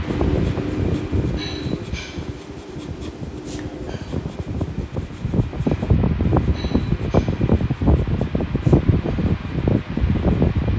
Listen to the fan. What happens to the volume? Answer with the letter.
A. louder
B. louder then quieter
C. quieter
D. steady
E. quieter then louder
E.